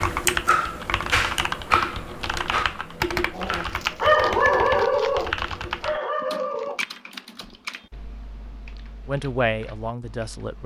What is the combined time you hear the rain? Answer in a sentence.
The rain can't be heard in this clip.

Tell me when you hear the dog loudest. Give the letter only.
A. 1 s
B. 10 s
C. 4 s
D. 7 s
C.